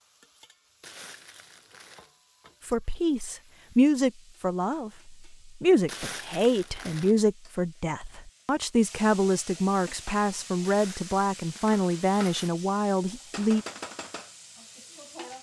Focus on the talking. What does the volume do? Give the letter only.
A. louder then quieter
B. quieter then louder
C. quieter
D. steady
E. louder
D.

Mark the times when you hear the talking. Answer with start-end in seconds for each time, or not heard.
2.6-13.7.